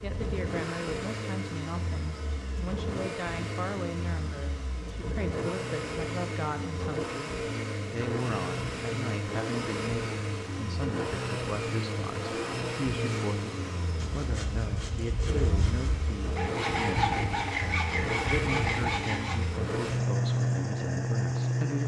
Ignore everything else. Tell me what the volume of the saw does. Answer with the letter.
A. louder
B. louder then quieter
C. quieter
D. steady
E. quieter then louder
A.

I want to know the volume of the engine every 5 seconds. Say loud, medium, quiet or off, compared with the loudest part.
medium, medium, medium, medium, loud.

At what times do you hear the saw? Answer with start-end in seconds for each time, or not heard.
13.9-19.4.